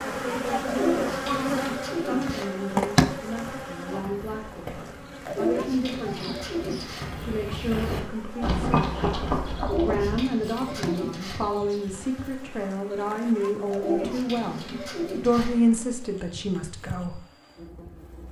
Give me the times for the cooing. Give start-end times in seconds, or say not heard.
0.7-2.5, 5.2-7.0, 9.6-11.4, 13.7-15.5.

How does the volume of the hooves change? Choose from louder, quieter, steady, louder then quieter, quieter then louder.
louder then quieter.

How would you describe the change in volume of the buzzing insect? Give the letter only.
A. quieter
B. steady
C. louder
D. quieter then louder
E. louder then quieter
A.